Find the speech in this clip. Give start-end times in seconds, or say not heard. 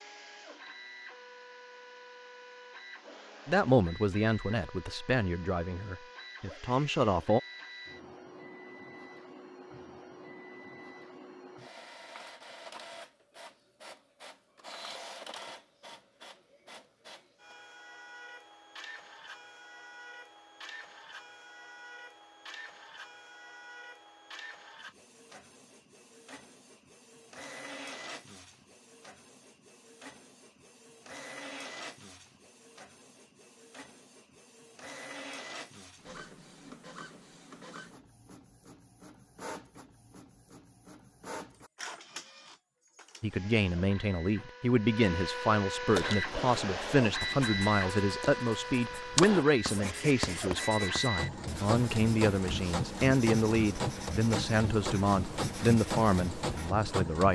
3.5-7.4, 43.2-57.2.